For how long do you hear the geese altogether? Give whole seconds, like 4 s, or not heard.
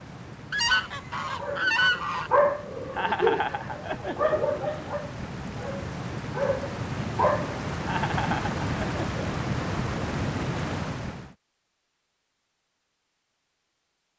2 s.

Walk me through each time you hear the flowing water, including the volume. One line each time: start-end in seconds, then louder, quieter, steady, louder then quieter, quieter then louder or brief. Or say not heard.
0.0-11.3 louder.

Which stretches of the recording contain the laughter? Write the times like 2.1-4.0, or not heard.
2.9-4.8, 7.8-9.2.